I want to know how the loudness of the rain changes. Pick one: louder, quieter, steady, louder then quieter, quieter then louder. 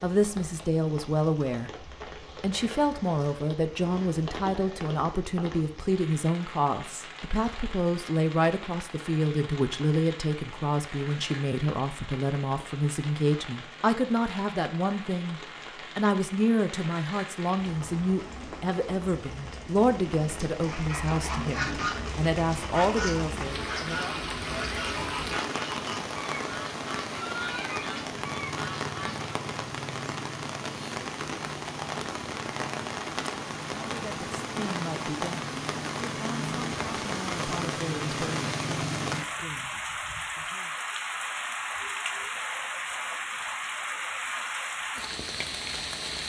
louder.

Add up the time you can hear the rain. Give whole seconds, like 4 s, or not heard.
46 s.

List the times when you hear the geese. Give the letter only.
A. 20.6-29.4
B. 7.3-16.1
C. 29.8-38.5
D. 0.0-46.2
A.